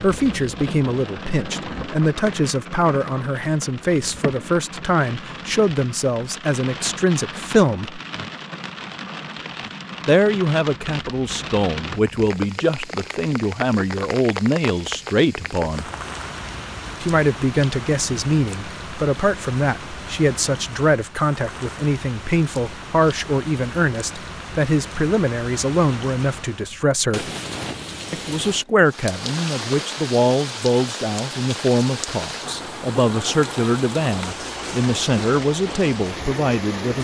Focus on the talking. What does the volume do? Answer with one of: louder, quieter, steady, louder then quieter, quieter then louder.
steady.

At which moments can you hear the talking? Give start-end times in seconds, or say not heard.
0.0-8.0, 10.1-15.9, 17.0-27.3, 28.1-36.9.